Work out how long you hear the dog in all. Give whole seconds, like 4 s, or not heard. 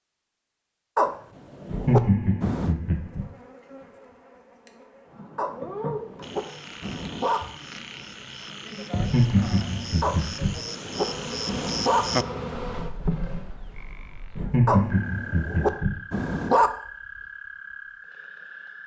8 s.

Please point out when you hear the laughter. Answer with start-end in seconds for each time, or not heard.
1.6-3.2, 8.9-10.5, 14.3-15.9.